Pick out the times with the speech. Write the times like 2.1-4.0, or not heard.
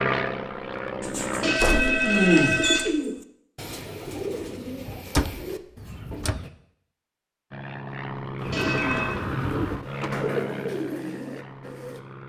not heard.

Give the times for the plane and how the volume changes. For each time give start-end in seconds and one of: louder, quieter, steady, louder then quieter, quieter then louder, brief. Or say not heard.
0.0-1.6 brief
7.5-12.2 quieter.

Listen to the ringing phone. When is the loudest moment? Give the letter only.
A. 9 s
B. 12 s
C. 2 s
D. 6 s
C.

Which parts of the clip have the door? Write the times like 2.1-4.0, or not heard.
1.6-2.0, 5.1-6.4, 8.3-10.3.